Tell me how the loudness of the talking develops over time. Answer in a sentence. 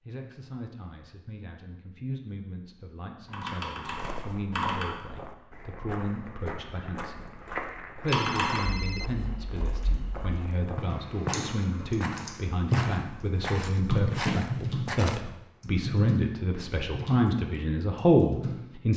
The volume of the talking goes up.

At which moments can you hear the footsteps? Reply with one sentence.
You can hear the footsteps from 3.9 to 15.2 s.